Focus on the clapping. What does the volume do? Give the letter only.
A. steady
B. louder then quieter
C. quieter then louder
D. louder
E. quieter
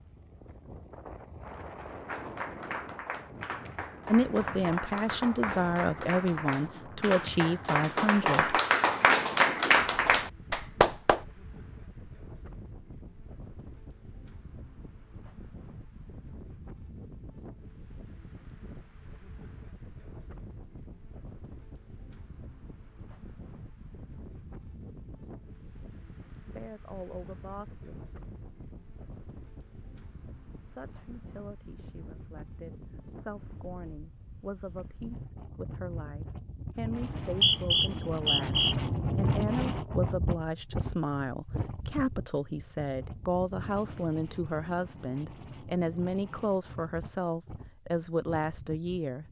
D.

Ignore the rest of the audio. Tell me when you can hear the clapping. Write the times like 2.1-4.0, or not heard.
2.0-11.2.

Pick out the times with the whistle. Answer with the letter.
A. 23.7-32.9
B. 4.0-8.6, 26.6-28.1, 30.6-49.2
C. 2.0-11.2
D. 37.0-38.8
D.